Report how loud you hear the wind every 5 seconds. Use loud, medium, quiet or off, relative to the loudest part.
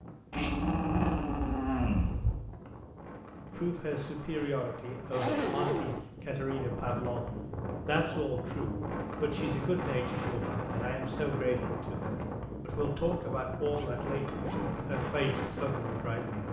medium, loud, loud, loud.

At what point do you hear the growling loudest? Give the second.
1 s.